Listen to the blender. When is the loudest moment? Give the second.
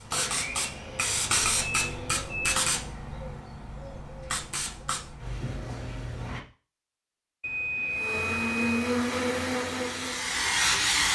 9 s.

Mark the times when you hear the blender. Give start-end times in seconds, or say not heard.
0.0-2.3, 7.8-11.0.